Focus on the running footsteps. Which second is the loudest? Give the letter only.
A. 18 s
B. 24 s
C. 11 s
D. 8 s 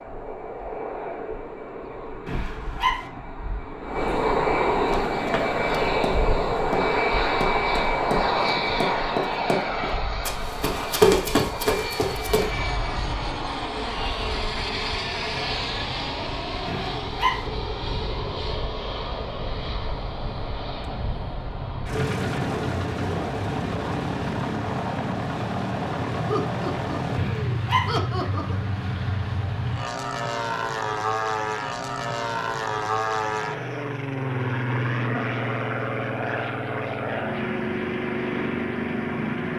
C.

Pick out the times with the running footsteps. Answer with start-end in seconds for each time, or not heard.
4.9-12.5.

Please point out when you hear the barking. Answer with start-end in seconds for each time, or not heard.
2.2-3.0, 16.6-17.4, 27.1-27.9.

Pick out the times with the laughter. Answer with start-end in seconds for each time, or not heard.
26.2-28.7.